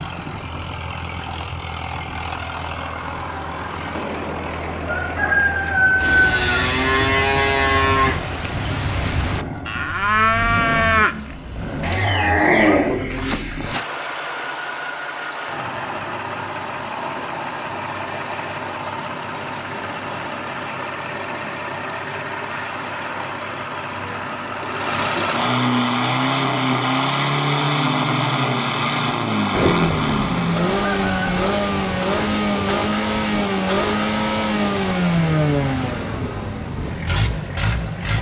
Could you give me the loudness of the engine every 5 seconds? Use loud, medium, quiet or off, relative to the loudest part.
medium, medium, medium, medium, medium, loud, loud, loud.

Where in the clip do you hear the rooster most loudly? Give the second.
6 s.